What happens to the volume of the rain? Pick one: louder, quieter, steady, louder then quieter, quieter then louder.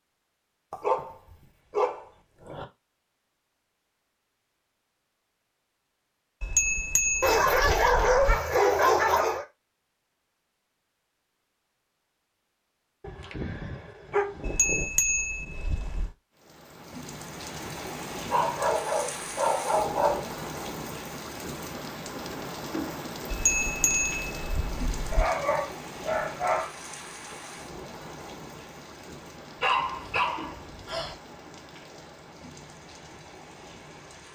quieter.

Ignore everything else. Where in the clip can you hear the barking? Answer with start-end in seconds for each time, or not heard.
0.7-2.6, 7.2-9.4, 13.0-14.8, 18.3-20.2, 25.1-26.7, 29.6-31.1.